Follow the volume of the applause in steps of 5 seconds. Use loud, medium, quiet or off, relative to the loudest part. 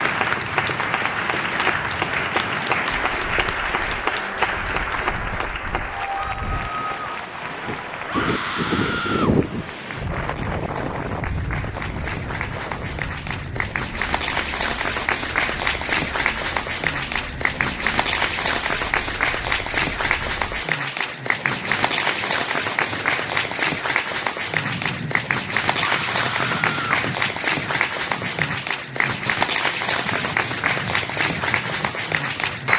loud, medium, medium, loud, loud, loud, loud.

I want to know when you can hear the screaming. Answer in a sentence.
You can hear the screaming from 8.1 to 9.3 s and from 25.8 to 27.0 s.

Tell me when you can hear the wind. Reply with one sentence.
You can hear the wind from 0.0 to 32.7 s.